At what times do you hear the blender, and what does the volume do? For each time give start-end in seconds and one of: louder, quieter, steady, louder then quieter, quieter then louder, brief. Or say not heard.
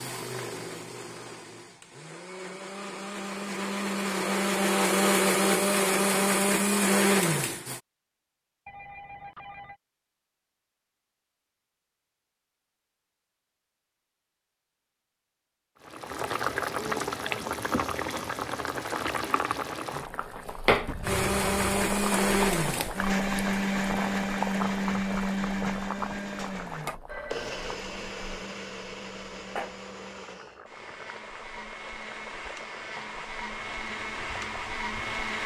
0.0-7.8 louder
21.0-35.4 quieter then louder.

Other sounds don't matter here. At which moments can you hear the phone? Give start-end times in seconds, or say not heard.
8.7-9.8, 20.9-21.6, 27.1-27.7.